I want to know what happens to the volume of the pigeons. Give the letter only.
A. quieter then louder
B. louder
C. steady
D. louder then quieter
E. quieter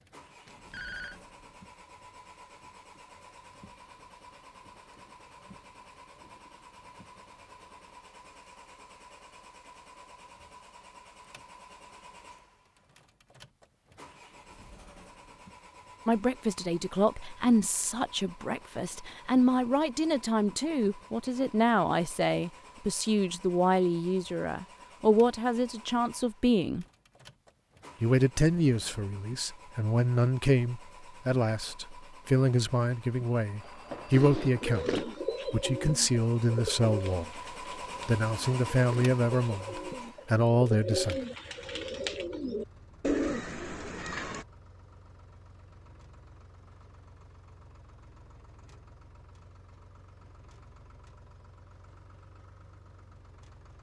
A.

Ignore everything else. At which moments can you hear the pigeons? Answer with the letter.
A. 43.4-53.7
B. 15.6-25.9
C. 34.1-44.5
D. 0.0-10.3
C.